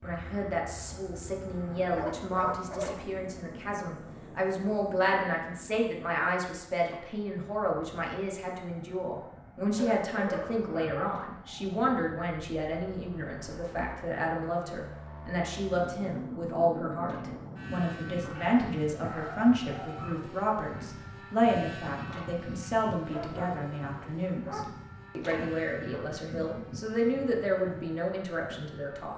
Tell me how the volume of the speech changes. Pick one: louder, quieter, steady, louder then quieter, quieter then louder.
steady.